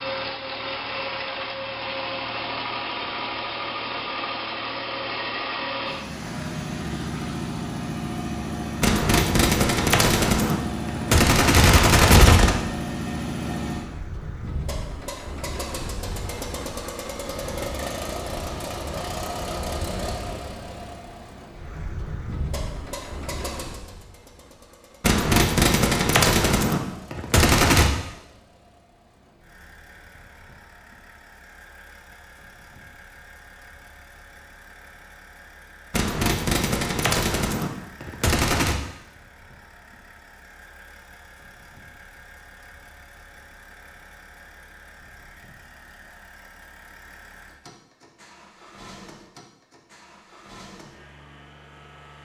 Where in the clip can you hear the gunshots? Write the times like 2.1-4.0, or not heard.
8.8-12.6, 25.0-27.9, 35.9-38.8.